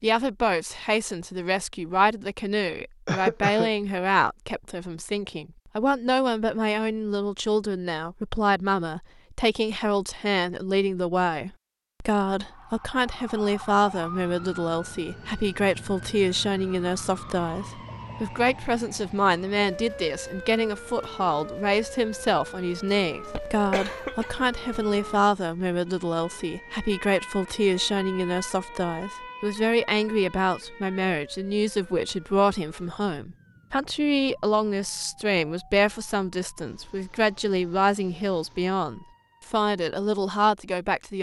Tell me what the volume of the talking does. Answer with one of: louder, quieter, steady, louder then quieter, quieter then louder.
steady.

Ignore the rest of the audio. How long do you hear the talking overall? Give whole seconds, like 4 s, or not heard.
41 s.